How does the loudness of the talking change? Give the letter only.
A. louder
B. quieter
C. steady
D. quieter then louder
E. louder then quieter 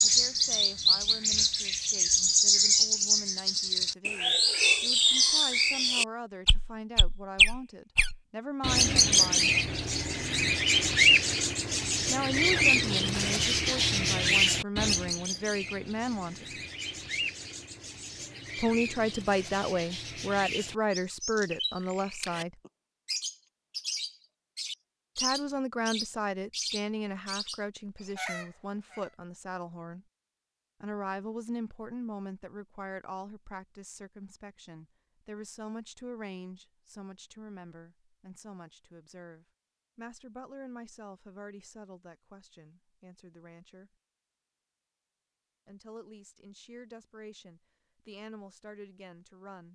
E.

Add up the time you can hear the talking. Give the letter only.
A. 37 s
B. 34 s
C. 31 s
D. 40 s
D.